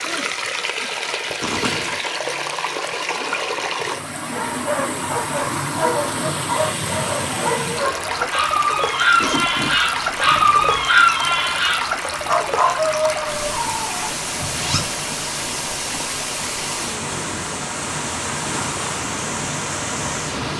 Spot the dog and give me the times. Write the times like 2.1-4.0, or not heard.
4.3-14.8.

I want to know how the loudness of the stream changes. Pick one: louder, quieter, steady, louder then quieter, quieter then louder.
steady.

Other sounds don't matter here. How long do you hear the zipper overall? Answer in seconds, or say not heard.
3 s.